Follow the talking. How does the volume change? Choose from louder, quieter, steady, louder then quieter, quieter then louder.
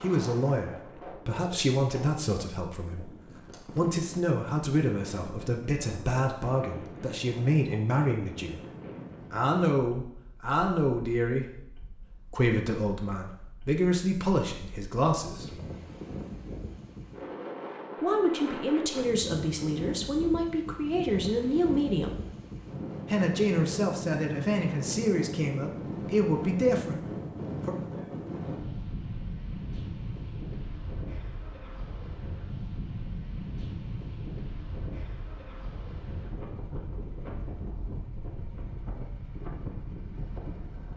steady.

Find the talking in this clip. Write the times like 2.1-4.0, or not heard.
0.0-8.6, 9.3-15.6, 18.0-22.1, 23.1-27.8.